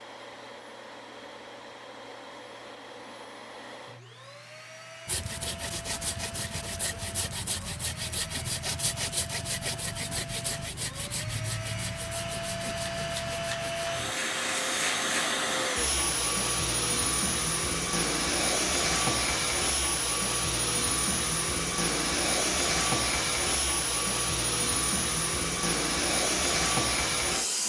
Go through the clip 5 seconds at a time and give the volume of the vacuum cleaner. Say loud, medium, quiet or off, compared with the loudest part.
quiet, quiet, medium, loud, loud, loud.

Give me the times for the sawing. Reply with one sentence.
The sawing can be heard from 5.0 to 14.2 s.